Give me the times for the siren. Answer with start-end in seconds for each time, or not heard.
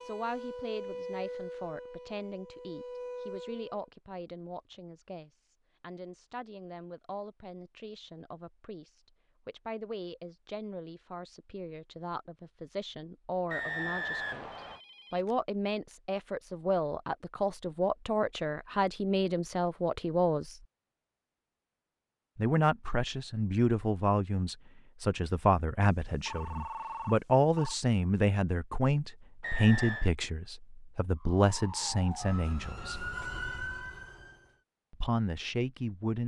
0.0-3.9, 31.1-34.6.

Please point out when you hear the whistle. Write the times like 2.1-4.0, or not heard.
13.5-14.8, 29.4-30.1.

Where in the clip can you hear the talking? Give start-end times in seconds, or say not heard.
0.0-20.6, 22.4-33.1, 34.9-36.2.